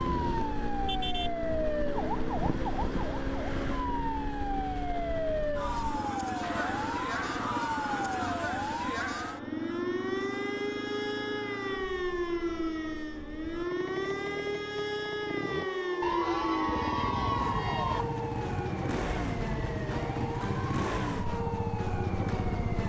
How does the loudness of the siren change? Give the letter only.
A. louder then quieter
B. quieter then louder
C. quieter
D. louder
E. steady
E.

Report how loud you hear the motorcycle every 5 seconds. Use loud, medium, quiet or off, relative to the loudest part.
loud, loud, medium, loud, loud.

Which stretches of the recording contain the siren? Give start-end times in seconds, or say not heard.
0.0-22.8.